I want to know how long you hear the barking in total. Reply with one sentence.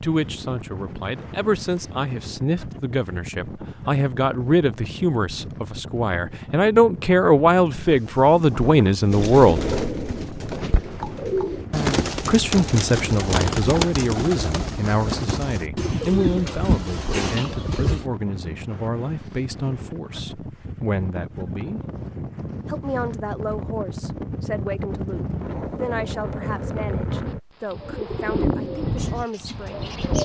You can't hear the barking here.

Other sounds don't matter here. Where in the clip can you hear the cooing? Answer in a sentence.
The cooing can be heard from 9.1 to 18.1 s and from 27.8 to 30.2 s.